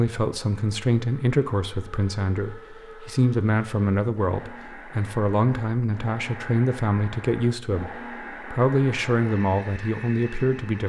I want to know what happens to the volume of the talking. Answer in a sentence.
The loudness of the talking stays about the same.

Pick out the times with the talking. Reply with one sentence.
You can hear the talking from 0.0 to 10.8 s.